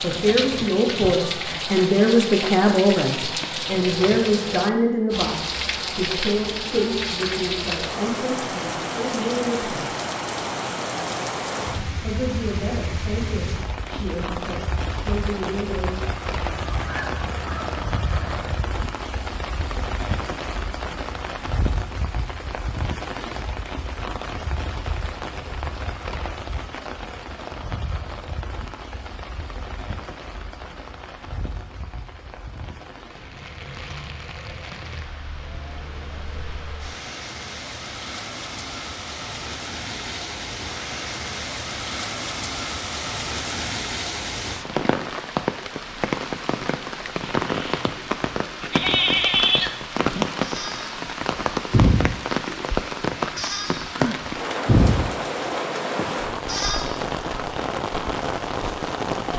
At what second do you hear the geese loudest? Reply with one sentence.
The volume of the geese peaks at 17 seconds.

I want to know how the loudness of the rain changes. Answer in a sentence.
The loudness of the rain goes down, then up.